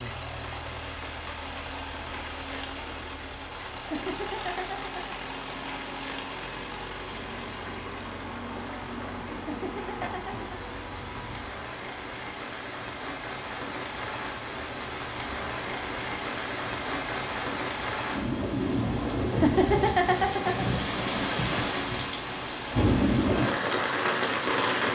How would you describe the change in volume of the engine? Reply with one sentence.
The volume of the engine stays about the same.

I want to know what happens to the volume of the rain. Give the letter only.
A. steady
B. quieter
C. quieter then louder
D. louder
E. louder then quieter
D.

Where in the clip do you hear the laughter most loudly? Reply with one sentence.
The loudest moment of the laughter is at 20 seconds.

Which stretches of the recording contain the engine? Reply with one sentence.
You can hear the engine from 0.0 to 11.5 s.